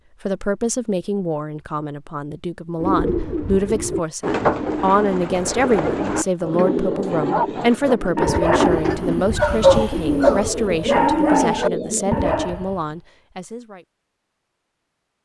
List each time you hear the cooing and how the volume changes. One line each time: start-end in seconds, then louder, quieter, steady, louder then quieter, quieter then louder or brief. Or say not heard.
2.8-12.4 steady.